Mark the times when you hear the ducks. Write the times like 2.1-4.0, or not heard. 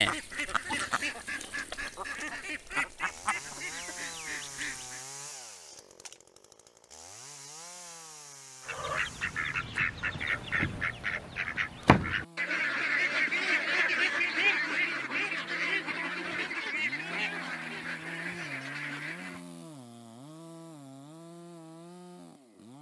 0.0-5.0, 8.7-19.4.